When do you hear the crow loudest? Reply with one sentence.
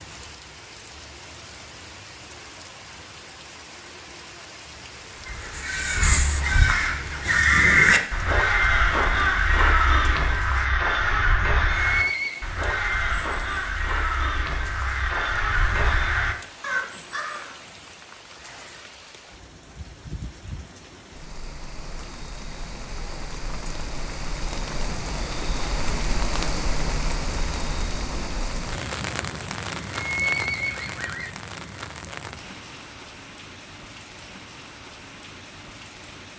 The volume of the crow peaks at 8 seconds.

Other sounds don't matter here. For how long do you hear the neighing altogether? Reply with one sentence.
You can hear the neighing for 2 seconds altogether.